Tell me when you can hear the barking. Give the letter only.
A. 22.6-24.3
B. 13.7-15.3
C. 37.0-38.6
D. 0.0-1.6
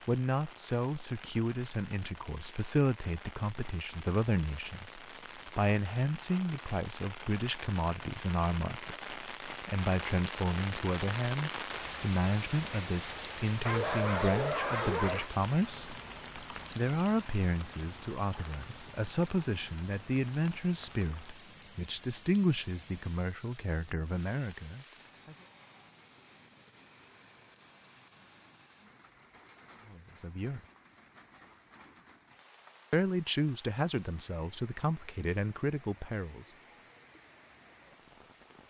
B.